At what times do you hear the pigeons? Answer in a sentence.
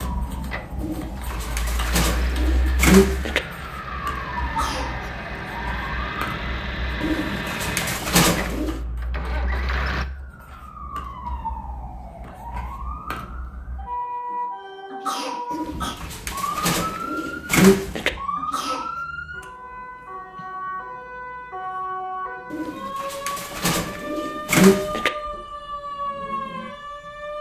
You can hear the pigeons from 0.8 to 3.4 s, from 7.0 to 8.8 s, from 15.5 to 18.1 s and from 22.5 to 25.1 s.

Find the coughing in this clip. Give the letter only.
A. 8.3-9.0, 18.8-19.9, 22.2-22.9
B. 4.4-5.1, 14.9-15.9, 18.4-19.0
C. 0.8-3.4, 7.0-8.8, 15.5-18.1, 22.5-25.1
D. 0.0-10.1
B.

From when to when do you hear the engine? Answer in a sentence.
The engine can be heard from 0.0 to 10.1 s.